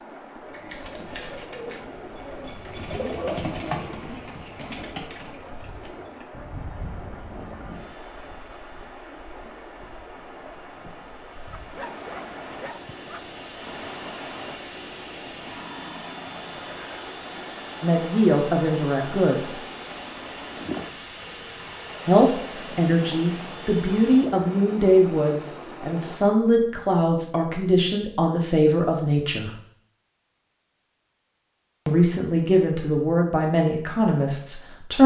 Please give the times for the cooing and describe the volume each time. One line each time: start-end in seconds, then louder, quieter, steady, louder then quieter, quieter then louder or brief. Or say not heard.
0.3-6.2 louder then quieter.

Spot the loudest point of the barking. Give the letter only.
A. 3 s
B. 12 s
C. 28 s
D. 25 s
B.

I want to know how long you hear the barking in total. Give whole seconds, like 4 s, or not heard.
2 s.